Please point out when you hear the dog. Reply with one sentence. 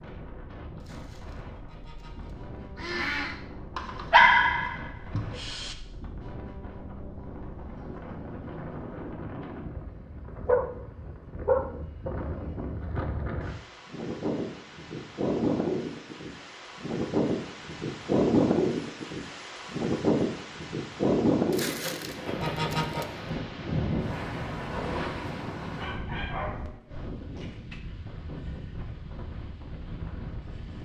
You can hear the dog from 3.8 to 5.8 s, from 10.4 to 12.1 s and from 25.8 to 27.8 s.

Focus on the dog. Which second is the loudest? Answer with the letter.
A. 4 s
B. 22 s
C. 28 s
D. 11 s
A.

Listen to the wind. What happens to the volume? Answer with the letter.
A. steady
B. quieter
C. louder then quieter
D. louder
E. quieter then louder
C.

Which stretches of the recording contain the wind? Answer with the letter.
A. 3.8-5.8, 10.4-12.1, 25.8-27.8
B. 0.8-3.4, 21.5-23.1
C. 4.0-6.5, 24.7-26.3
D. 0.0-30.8
D.